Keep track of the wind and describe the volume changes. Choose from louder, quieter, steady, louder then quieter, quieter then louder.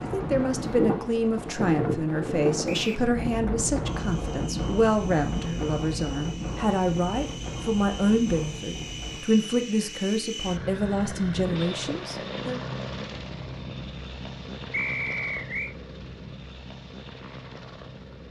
quieter.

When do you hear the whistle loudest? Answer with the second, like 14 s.
15 s.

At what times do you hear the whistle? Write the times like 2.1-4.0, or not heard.
2.6-3.1, 14.7-15.8.